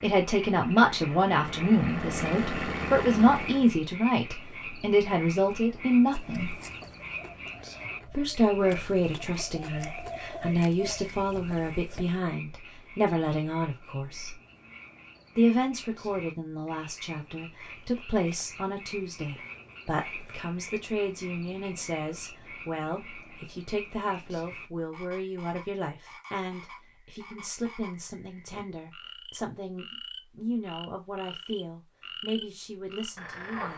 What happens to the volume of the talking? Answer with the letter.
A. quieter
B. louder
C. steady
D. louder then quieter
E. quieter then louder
A.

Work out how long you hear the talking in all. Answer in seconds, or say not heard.
31 s.